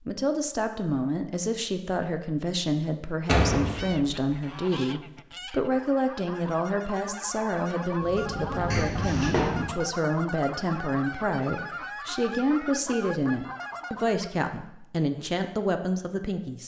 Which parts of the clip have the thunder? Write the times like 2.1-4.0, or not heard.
8.0-9.7.